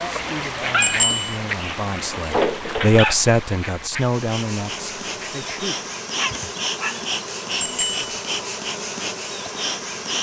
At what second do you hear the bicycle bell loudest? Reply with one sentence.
The loudest moment of the bicycle bell is at 1 second.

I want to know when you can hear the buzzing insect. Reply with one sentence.
The buzzing insect can be heard from 4.0 to 10.1 s.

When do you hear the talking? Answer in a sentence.
The talking can be heard from 0.0 to 5.8 s.